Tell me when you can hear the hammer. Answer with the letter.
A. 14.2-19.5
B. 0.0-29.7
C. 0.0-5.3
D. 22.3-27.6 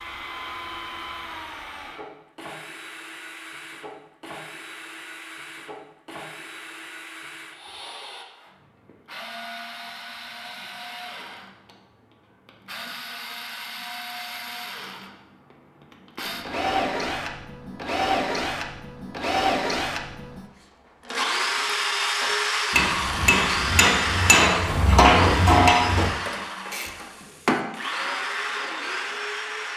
D.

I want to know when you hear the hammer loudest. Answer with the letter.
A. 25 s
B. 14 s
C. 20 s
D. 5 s
A.